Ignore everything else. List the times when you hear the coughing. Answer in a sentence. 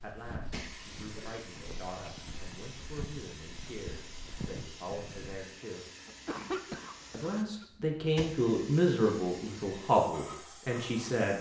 The coughing can be heard from 1.0 to 1.4 s and from 6.0 to 7.7 s.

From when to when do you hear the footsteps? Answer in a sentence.
You can hear the footsteps from 0.0 to 5.5 s.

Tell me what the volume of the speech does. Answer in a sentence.
The volume of the speech goes up.